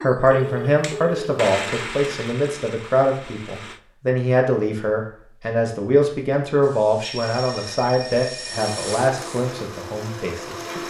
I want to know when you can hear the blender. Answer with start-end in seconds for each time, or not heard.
0.0-3.8, 8.5-10.8.